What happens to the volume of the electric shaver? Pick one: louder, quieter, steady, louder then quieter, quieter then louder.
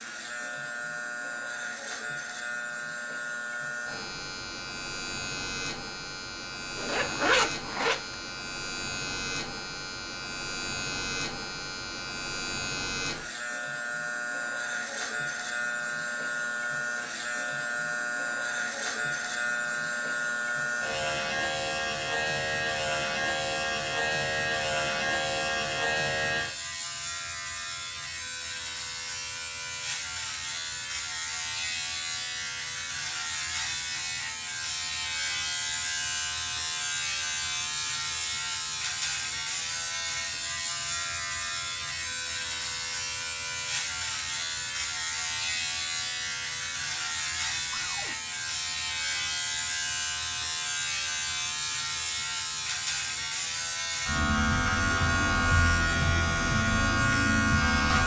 louder.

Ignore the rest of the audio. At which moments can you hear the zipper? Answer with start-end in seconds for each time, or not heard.
6.8-8.2.